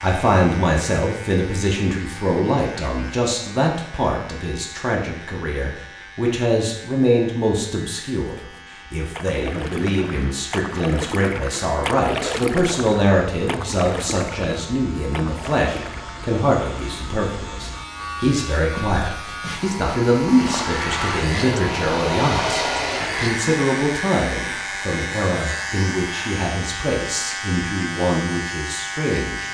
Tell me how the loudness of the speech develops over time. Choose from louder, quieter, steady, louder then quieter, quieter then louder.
steady.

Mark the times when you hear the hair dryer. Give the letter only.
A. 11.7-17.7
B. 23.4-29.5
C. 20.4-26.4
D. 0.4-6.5
C.